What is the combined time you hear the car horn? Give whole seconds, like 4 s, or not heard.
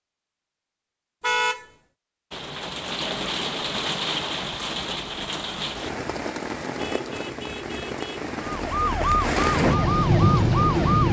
2 s.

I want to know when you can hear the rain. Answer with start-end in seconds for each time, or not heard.
2.3-11.0.